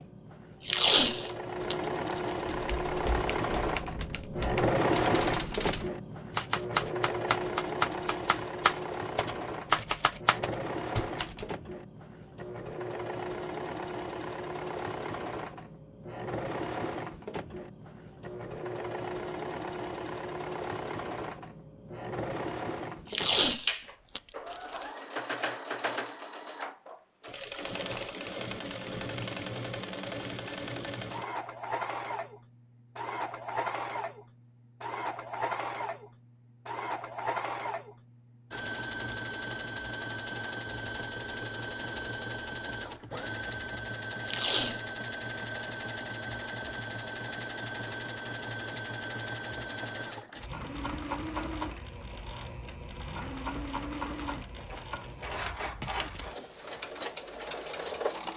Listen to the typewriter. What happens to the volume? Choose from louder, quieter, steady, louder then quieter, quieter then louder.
louder.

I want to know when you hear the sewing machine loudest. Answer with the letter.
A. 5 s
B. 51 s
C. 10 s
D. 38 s
A.